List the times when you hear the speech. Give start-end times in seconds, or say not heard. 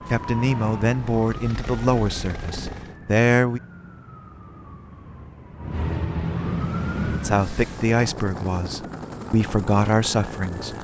0.1-3.6, 7.2-10.7.